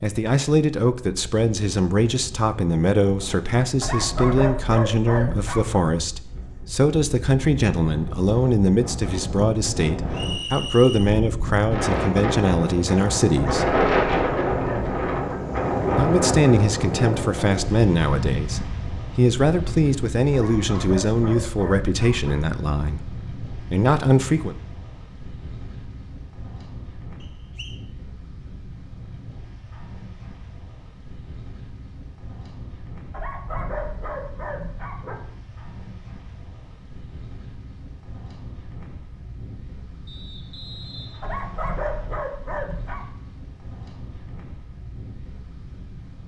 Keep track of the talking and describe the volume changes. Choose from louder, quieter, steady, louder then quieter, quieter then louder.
steady.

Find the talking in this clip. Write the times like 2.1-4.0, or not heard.
0.0-13.7, 15.9-24.6.